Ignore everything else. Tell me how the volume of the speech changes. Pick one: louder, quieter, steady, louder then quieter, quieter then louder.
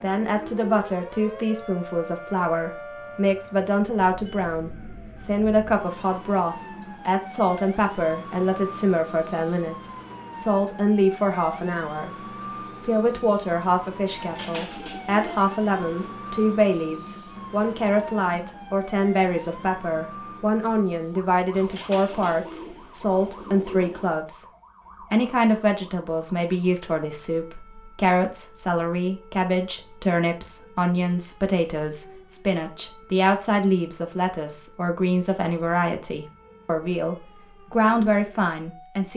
steady.